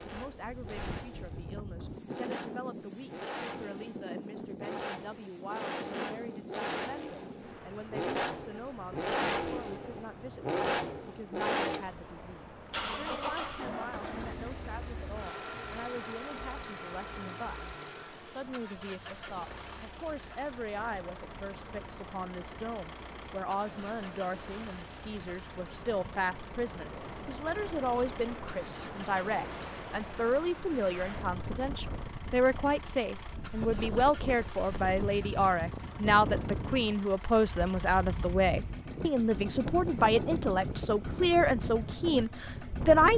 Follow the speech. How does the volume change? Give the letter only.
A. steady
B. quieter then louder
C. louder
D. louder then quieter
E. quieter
C.